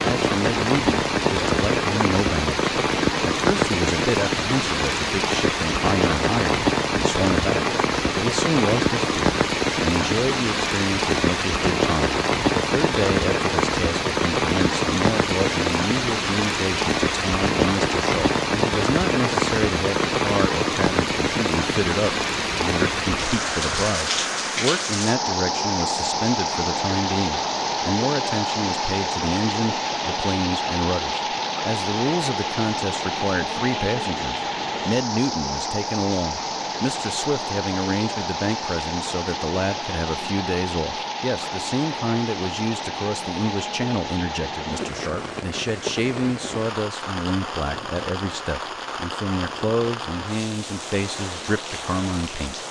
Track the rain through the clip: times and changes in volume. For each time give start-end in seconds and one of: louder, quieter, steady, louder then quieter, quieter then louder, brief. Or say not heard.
0.0-52.6 quieter.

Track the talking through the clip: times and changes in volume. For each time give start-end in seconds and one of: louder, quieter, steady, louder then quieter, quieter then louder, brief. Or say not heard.
0.0-52.5 steady.